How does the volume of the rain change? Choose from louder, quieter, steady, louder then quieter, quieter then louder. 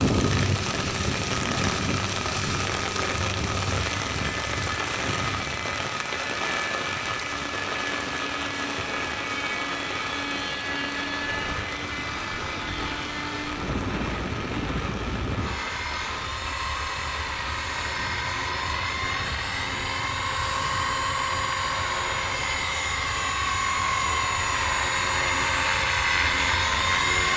quieter.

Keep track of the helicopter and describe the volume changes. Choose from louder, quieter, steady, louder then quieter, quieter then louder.
louder.